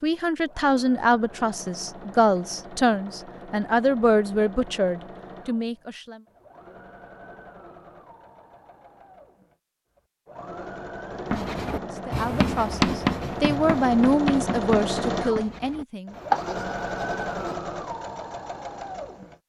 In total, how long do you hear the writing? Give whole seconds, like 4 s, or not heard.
6 s.